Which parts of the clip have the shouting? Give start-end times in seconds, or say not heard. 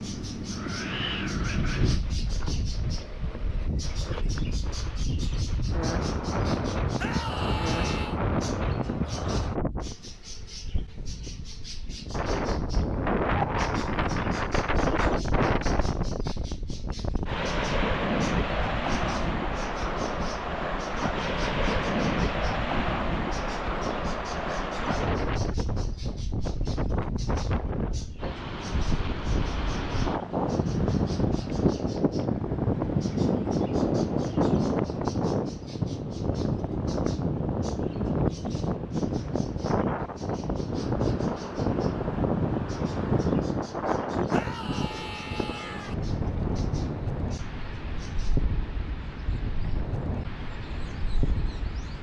7.0-8.2, 44.3-46.0.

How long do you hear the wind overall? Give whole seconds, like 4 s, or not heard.
52 s.